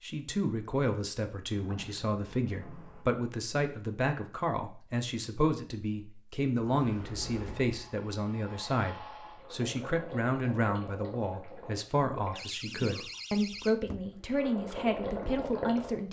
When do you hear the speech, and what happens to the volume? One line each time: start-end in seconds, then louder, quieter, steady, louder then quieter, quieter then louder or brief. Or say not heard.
0.0-16.0 steady.